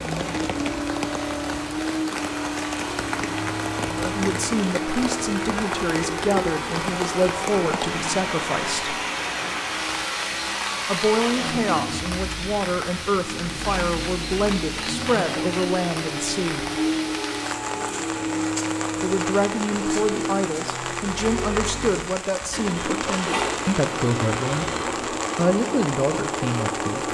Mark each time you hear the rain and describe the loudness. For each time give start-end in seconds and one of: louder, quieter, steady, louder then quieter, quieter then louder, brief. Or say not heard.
0.0-27.0 steady.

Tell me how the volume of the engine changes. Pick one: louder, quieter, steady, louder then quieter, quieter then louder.
steady.